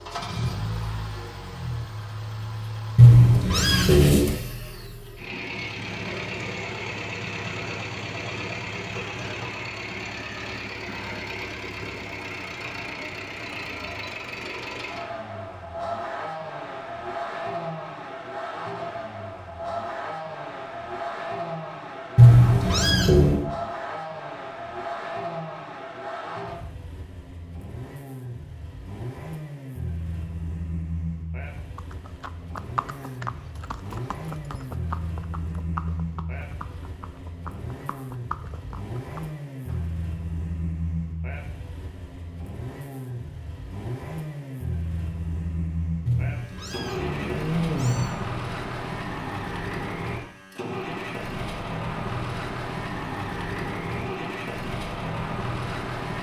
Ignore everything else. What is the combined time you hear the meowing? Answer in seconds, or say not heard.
5 s.